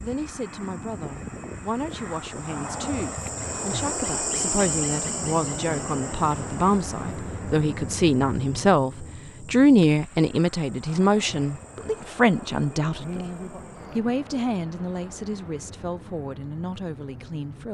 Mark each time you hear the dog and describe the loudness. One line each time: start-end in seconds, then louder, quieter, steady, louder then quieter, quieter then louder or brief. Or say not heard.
not heard.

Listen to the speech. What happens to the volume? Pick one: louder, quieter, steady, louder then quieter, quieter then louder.
louder then quieter.